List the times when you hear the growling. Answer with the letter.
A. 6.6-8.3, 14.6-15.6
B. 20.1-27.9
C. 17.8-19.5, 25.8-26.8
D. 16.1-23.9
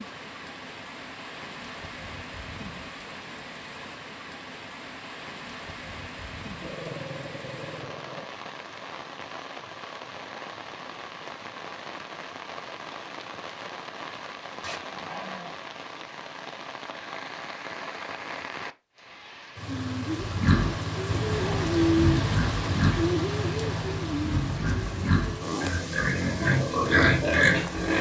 A.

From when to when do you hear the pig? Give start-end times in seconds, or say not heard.
20.1-27.9.